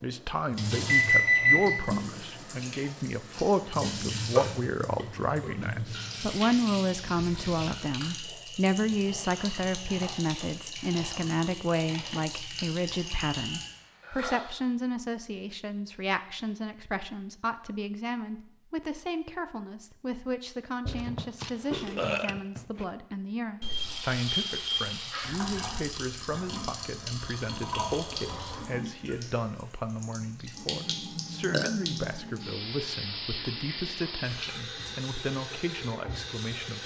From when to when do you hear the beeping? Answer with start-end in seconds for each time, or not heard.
0.8-1.8, 23.6-25.2.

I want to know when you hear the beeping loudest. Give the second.
1 s.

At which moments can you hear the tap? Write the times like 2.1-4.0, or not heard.
0.0-14.6, 23.6-36.8.